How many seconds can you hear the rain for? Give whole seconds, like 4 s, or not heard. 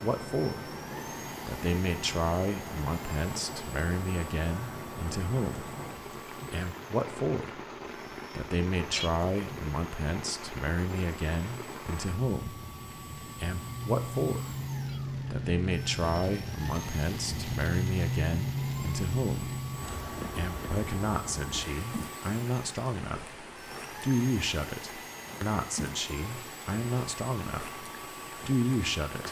29 s.